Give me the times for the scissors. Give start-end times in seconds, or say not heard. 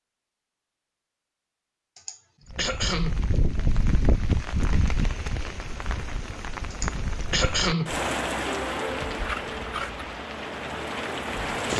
9.2-10.1.